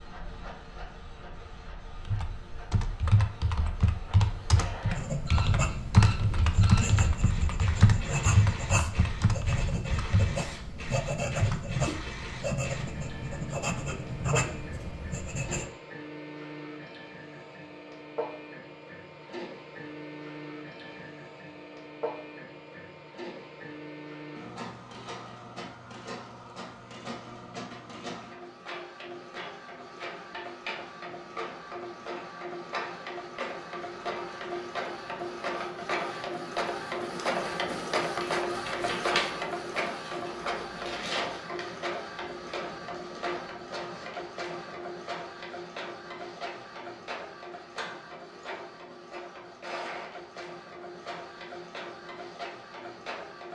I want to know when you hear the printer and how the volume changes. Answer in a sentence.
You can hear the printer from 0.0 to 53.4 s, getting louder then quieter.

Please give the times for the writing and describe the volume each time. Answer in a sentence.
The writing can be heard from 4.9 to 15.7 s, at a steady volume.